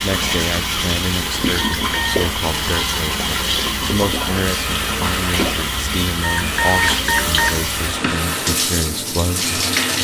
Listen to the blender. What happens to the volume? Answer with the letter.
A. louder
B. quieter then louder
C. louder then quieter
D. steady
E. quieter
D.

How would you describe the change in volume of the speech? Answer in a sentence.
The loudness of the speech stays about the same.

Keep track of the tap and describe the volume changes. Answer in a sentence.
The volume of the tap stays about the same.